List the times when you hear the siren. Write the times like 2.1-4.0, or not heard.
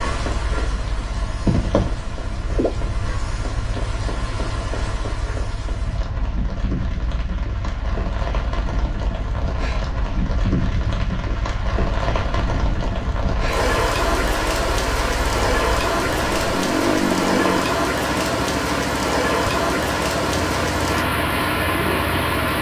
not heard.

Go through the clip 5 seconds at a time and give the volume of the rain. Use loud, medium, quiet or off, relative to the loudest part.
medium, medium, loud, loud, loud.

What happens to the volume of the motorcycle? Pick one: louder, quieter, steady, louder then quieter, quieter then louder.
louder.